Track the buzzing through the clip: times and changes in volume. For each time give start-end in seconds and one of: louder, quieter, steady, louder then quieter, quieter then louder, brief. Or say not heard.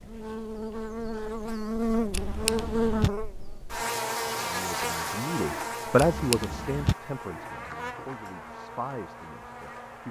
0.0-10.0 quieter.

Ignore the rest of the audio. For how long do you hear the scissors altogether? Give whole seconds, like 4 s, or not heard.
2 s.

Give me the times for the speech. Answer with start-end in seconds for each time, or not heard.
4.3-10.0.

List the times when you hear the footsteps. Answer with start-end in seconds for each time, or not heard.
not heard.